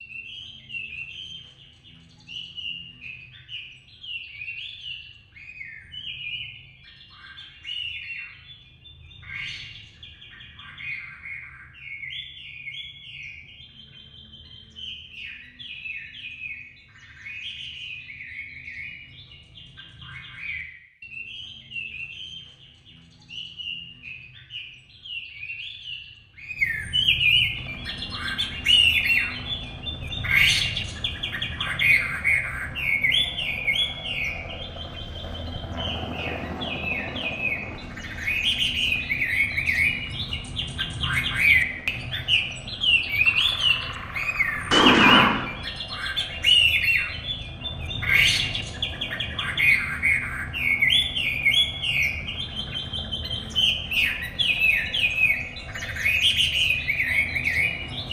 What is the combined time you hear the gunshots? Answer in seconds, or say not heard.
2 s.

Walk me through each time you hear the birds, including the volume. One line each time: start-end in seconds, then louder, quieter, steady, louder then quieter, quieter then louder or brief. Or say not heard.
0.0-58.0 louder.